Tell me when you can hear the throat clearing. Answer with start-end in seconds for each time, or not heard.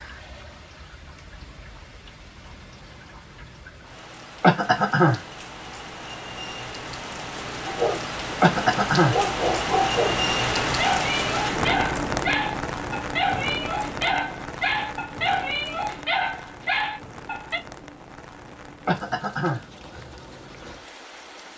4.4-5.2, 8.4-9.2, 18.9-19.6.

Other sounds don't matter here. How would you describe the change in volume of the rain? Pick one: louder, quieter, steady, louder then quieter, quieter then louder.
louder then quieter.